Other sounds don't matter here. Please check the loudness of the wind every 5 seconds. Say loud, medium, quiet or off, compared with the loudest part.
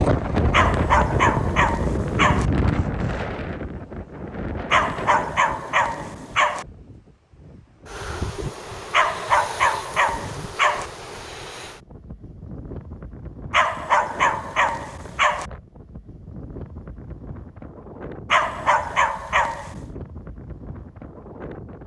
loud, medium, quiet, quiet, quiet.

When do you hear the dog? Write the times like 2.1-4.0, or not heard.
0.5-2.5, 4.7-6.7, 8.9-10.9, 13.5-15.5, 18.3-19.8.